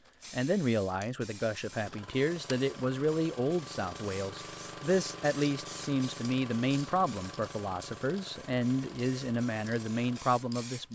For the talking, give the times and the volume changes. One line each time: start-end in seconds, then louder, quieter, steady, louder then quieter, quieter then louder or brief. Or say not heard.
0.3-10.9 steady.